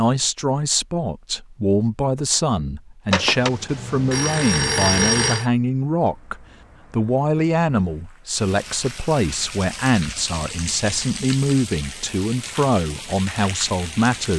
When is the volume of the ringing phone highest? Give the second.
5 s.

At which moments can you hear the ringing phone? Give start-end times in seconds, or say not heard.
3.1-5.5.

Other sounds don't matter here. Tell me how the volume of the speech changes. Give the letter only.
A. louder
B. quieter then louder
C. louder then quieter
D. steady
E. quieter
D.